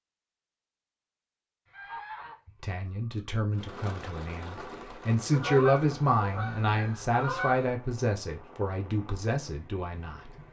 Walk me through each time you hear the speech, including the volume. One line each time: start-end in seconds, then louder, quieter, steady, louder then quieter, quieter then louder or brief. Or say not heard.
2.6-10.3 louder then quieter.